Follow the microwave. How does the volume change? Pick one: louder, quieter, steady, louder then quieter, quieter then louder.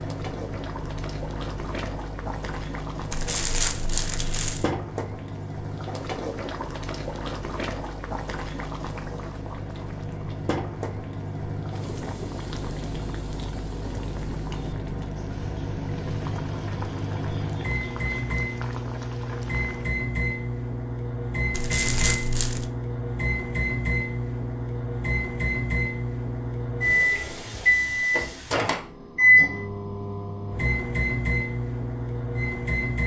louder.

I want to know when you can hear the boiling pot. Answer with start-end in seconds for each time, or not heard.
0.0-19.9.